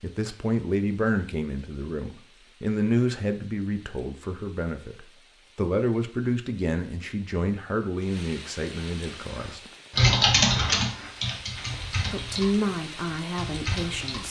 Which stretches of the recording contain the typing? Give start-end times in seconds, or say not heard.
9.1-14.2.